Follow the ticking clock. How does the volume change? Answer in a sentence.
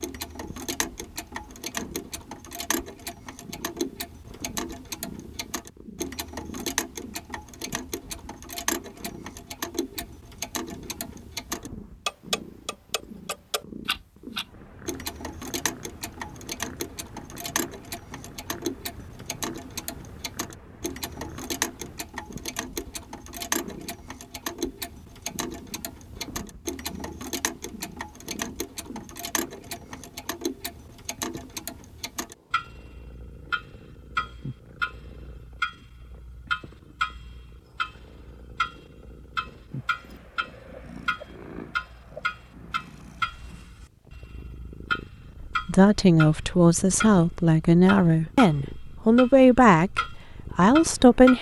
The volume of the ticking clock stays about the same.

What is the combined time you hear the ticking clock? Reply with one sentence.
You can hear the ticking clock for 51 seconds altogether.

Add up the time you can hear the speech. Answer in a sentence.
The speech can be heard for 6 seconds in total.